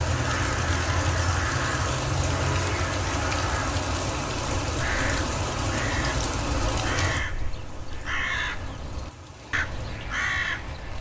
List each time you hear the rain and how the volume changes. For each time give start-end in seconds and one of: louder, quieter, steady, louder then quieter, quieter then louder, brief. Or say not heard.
0.0-10.9 quieter.